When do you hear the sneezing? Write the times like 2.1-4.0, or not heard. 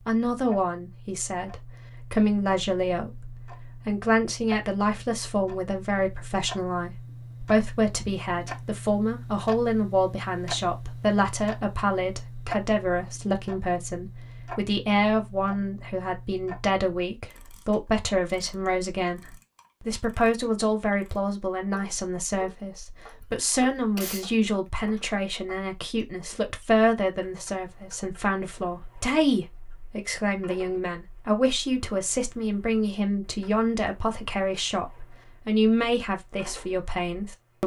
23.9-24.7.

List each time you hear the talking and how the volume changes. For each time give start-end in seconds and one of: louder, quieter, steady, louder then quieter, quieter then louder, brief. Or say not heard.
0.1-19.2 steady
19.9-37.6 steady.